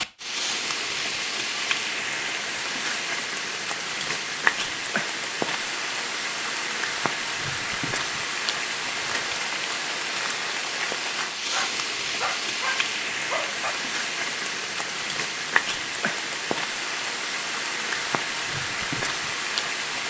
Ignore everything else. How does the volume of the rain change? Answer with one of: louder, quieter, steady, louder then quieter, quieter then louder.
steady.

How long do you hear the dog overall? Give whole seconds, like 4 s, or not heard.
2 s.